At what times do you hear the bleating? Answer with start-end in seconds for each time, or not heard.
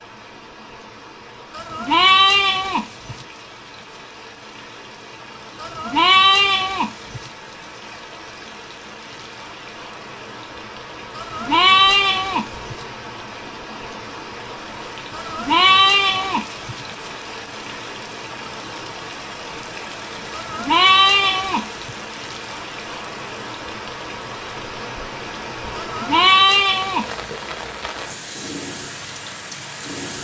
1.6-3.1, 5.6-7.2, 11.2-12.8, 15.2-16.8, 20.3-21.9, 25.8-27.1.